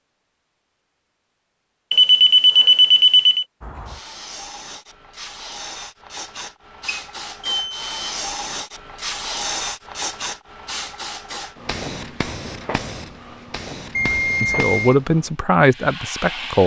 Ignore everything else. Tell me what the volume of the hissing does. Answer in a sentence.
The loudness of the hissing goes up, then down.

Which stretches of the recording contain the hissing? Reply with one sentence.
The hissing can be heard from 3.6 to 16.6 s.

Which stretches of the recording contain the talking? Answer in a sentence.
You can hear the talking from 14.1 to 16.6 s.